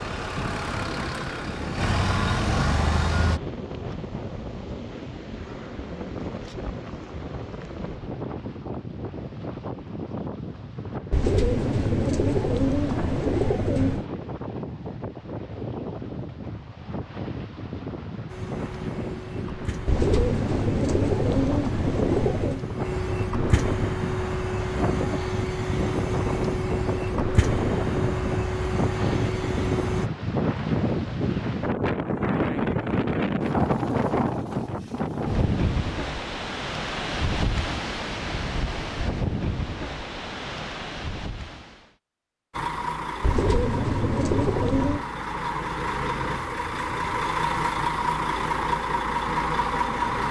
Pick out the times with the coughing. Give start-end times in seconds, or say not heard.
not heard.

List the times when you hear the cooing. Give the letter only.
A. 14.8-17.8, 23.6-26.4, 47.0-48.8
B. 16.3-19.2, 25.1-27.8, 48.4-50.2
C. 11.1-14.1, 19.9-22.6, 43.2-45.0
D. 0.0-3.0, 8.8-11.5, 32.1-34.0
C.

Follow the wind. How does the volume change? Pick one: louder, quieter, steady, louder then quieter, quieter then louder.
louder.